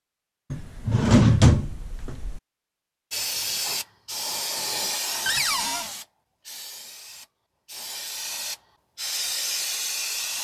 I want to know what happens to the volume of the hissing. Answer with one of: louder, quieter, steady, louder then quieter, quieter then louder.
quieter then louder.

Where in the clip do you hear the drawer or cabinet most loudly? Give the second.
1 s.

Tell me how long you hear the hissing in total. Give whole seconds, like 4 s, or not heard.
7 s.